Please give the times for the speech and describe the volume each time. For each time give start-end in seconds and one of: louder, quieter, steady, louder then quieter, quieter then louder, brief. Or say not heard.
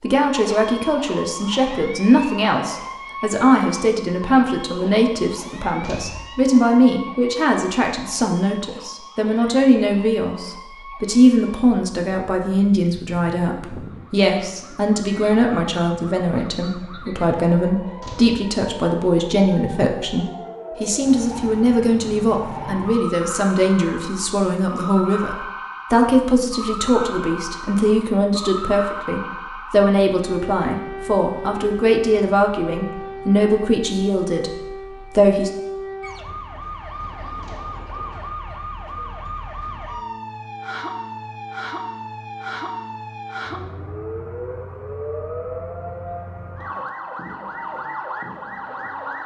0.0-35.5 steady.